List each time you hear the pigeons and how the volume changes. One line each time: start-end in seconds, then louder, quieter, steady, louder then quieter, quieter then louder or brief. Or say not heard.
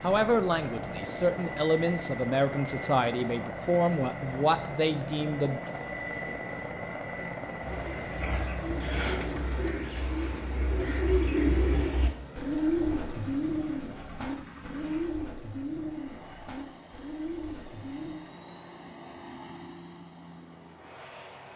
7.6-18.2 louder then quieter.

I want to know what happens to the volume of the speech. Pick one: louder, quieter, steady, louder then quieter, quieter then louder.
steady.